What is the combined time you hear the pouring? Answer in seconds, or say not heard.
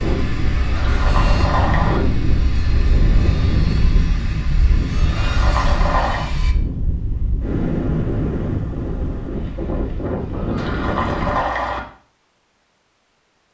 4 s.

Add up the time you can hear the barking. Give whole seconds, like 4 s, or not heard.
not heard.